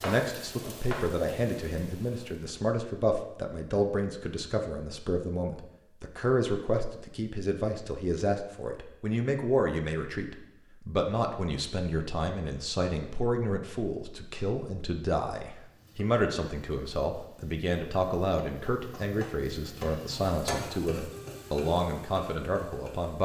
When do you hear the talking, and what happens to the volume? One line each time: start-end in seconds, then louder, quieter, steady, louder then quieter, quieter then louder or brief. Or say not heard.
0.0-23.1 steady.